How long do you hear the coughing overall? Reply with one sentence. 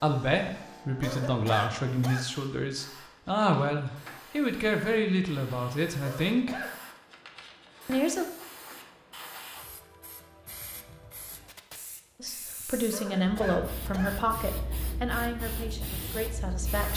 The coughing can be heard for 3 seconds in total.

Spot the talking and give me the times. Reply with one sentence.
You can hear the talking from 0.0 to 6.6 s, from 7.8 to 8.2 s and from 12.2 to 16.9 s.